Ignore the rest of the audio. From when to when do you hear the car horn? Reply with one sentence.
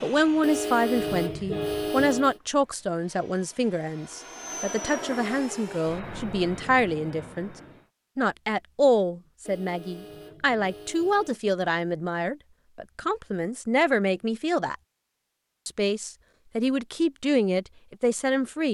The car horn can be heard from 0.4 to 2.4 s and from 9.4 to 11.4 s.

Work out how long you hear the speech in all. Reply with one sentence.
You can hear the speech for 17 seconds altogether.